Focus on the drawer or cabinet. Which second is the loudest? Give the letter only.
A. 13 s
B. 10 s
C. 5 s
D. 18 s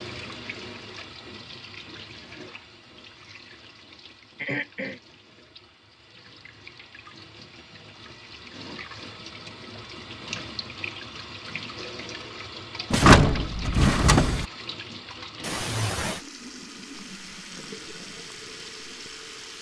A.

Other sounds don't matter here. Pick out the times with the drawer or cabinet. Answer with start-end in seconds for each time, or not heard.
12.9-14.4.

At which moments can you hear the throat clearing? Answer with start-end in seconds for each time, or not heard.
4.3-5.0, 15.4-16.2.